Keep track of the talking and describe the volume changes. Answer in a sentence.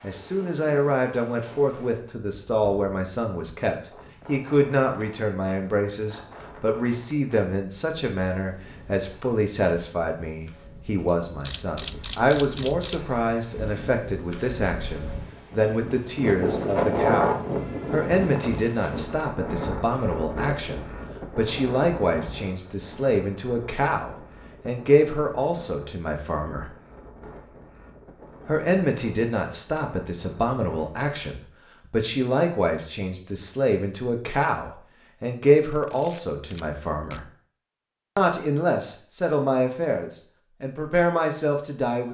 The loudness of the talking stays about the same.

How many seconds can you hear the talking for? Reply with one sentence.
The talking can be heard for 39 seconds in total.